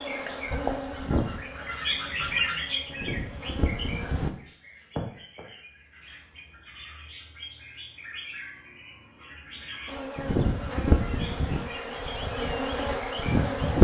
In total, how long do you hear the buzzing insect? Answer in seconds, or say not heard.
8 s.